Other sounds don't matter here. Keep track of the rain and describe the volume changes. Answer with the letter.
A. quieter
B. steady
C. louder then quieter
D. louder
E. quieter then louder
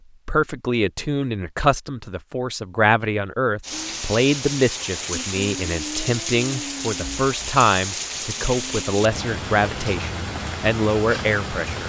B.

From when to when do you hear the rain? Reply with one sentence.
The rain can be heard from 3.6 to 11.8 s.